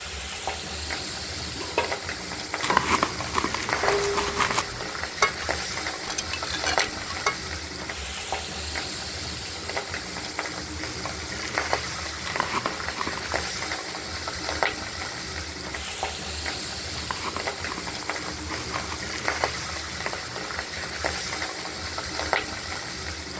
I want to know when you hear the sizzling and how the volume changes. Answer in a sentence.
The sizzling can be heard from 0.0 to 23.3 s, at a steady volume.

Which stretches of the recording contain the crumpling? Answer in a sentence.
The crumpling can be heard from 2.6 to 4.7 s, from 12.2 to 13.4 s and from 16.9 to 19.0 s.